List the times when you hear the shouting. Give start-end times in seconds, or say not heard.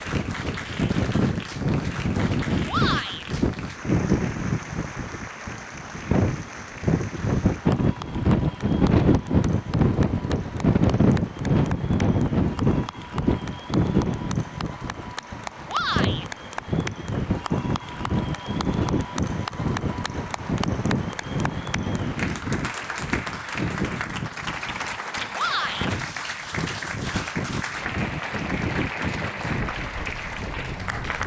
2.6-3.2, 15.7-16.2, 25.4-25.9.